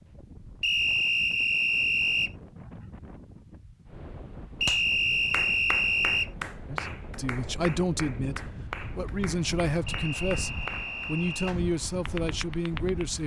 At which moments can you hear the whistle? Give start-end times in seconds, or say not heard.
0.6-2.3, 4.6-6.3, 9.8-11.6.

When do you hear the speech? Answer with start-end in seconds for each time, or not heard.
6.7-13.2.